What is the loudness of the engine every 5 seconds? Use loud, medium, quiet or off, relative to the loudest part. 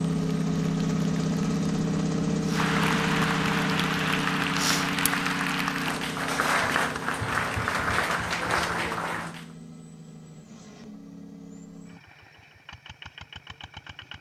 loud, medium, quiet.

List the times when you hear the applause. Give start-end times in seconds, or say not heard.
0.0-9.4.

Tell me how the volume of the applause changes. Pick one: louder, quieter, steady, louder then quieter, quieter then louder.
louder.